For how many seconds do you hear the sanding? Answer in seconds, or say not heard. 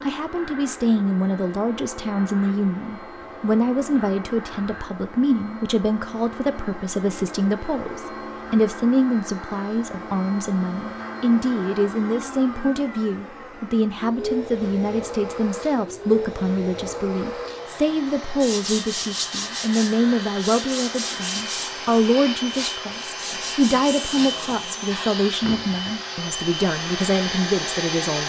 6 s.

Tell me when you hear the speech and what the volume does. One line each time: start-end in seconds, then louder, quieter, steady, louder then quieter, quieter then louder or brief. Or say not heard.
0.0-28.2 steady.